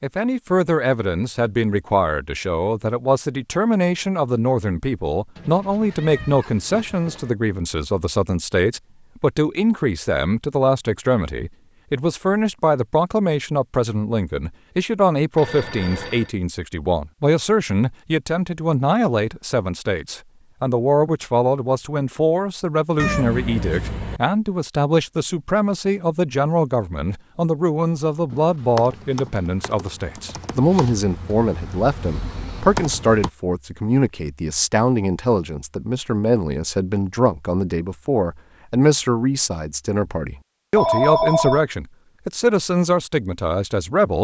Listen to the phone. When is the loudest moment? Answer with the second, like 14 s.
41 s.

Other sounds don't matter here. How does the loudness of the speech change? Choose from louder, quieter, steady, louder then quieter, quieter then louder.
steady.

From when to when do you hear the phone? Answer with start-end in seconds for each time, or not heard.
15.3-16.3, 40.8-41.6.